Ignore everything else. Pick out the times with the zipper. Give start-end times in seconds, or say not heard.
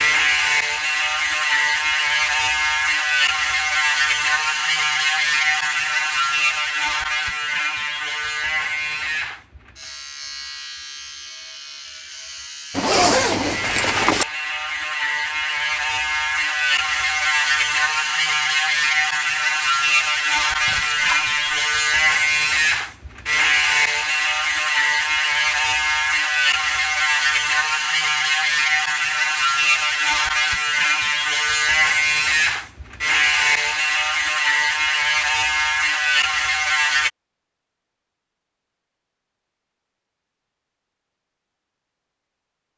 12.7-14.2.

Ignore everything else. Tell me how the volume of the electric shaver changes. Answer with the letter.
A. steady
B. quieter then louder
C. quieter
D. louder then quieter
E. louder
B.